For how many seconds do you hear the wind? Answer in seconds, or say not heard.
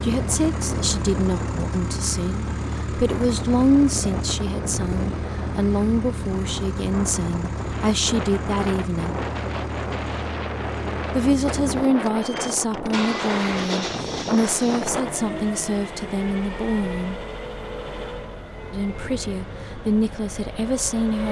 15 s.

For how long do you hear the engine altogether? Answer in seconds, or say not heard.
21 s.